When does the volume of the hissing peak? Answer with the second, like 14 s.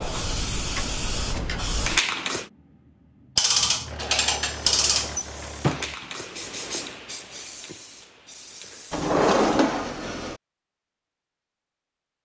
2 s.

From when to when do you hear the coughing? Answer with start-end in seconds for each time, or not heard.
not heard.